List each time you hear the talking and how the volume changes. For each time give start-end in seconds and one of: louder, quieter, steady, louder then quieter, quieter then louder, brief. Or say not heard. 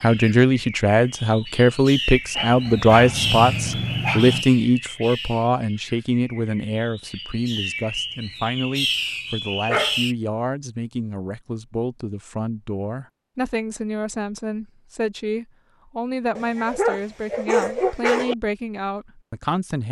0.0-19.8 quieter.